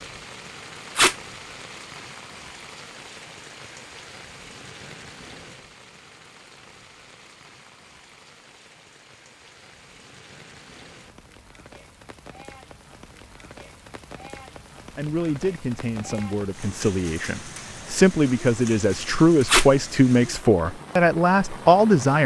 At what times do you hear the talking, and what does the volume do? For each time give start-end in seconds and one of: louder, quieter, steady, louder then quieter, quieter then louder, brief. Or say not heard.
14.9-22.2 louder.